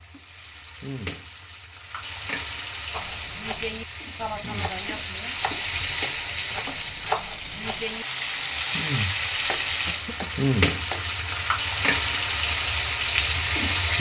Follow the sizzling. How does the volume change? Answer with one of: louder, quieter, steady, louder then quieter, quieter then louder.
louder.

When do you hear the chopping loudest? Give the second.
7 s.